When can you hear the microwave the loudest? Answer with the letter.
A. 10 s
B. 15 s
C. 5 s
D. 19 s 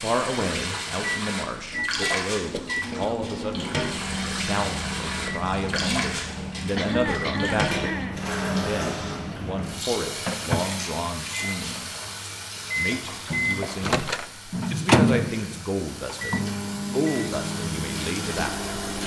B.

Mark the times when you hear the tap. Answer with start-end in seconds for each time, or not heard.
0.0-19.0.